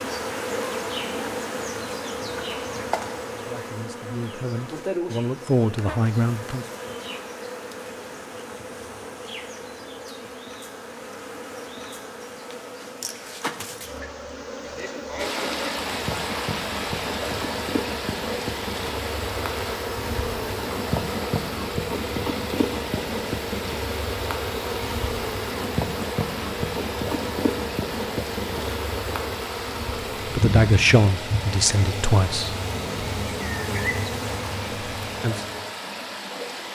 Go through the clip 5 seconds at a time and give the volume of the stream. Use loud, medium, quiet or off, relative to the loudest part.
off, off, off, loud, loud, loud, loud, loud.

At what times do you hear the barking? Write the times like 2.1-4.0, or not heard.
not heard.